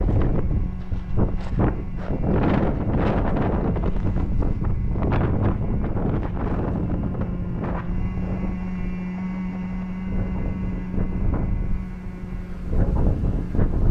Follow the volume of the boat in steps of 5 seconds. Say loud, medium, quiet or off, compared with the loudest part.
medium, loud, loud.